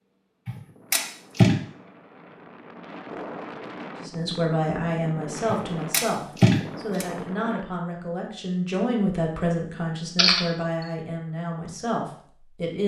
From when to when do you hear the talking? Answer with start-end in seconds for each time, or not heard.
4.0-12.8.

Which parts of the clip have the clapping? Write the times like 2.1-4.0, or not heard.
not heard.